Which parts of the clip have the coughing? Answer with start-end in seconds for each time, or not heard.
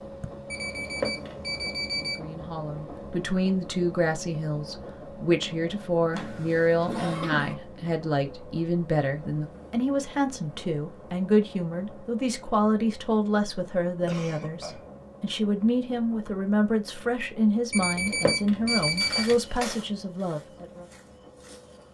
6.1-7.5, 14.1-15.1.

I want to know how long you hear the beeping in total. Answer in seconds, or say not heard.
3 s.